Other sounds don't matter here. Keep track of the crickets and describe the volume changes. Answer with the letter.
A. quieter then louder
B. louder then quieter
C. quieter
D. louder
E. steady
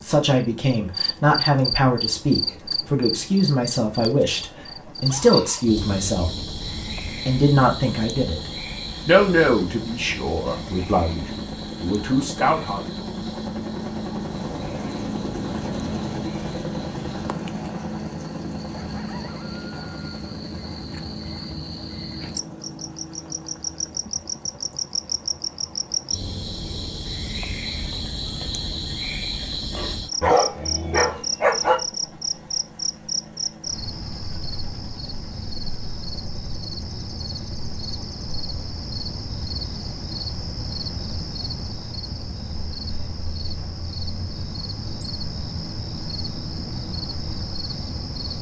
A.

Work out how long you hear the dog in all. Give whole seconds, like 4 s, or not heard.
2 s.